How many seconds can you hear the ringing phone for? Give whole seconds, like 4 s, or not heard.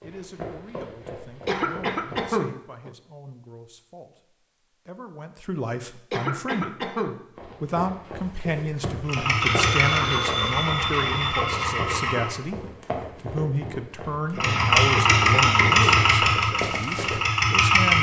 2 s.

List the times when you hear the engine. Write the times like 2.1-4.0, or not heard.
9.1-12.4, 14.3-17.9.